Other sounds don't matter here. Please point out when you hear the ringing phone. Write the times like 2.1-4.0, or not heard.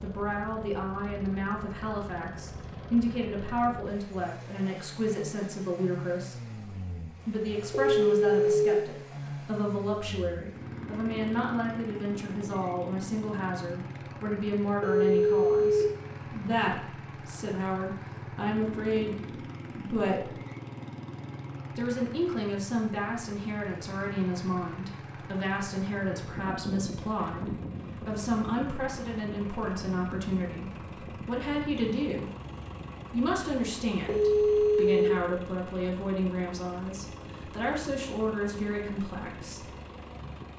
7.7-8.7, 14.8-15.8, 34.0-35.1.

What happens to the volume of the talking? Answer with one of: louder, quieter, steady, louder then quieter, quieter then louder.
steady.